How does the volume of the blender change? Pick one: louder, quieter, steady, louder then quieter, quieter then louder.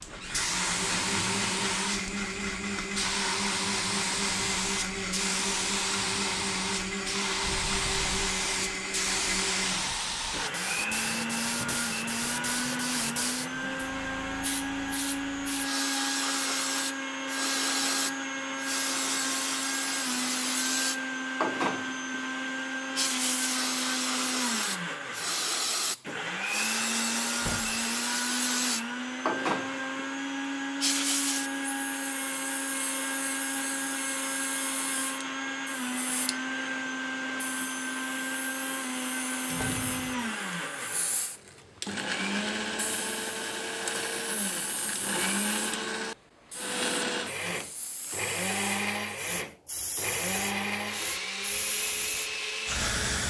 steady.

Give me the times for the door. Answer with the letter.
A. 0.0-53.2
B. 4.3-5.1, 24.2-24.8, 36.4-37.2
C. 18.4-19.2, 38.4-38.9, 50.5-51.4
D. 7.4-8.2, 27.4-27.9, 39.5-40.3
D.